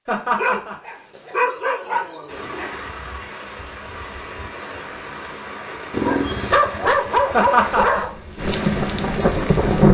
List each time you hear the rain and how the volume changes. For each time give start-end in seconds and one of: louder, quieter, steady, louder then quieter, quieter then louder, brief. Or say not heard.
2.2-9.9 louder.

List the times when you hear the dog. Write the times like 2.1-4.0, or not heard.
0.3-2.8, 5.9-8.2.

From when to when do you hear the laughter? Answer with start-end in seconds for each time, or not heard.
0.1-0.8, 7.3-8.1.